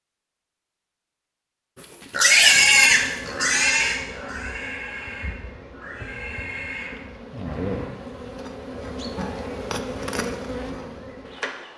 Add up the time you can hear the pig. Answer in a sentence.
You can hear the pig for 6 seconds altogether.